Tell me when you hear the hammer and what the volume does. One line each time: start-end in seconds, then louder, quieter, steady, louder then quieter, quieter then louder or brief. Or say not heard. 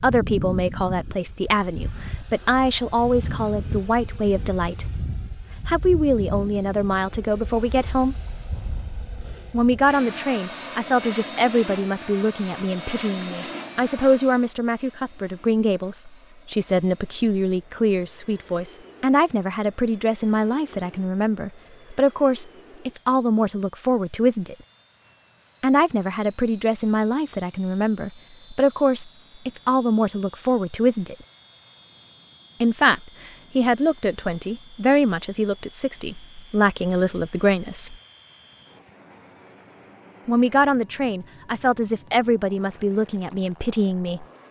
not heard.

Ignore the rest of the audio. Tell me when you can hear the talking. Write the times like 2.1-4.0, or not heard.
0.0-5.0, 5.7-8.2, 9.5-24.6, 25.6-31.1, 32.6-38.0, 40.2-44.2.